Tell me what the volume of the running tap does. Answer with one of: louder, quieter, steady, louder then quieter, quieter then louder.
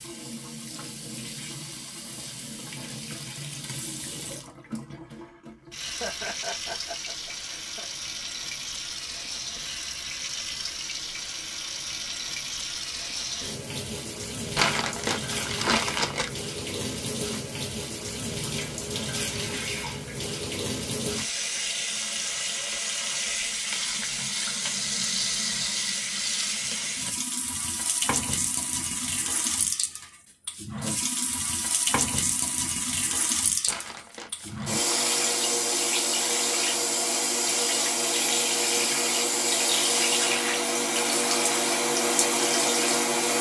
louder.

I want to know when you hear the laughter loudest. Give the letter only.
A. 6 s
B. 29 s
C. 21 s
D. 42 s
A.